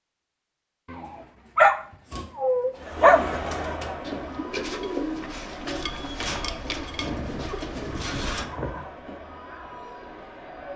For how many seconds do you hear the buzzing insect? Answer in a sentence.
You can't hear the buzzing insect here.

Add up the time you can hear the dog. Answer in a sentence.
You can hear the dog for 4 seconds altogether.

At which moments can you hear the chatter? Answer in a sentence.
The chatter can be heard from 2.8 to 10.7 s.